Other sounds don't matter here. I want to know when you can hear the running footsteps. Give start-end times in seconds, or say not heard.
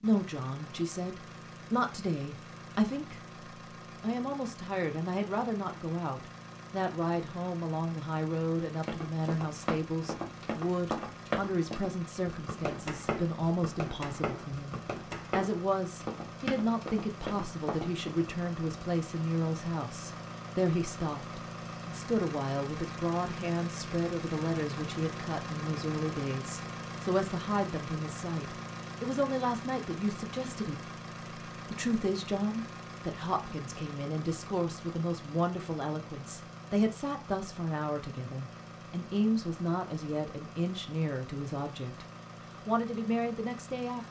8.8-18.1.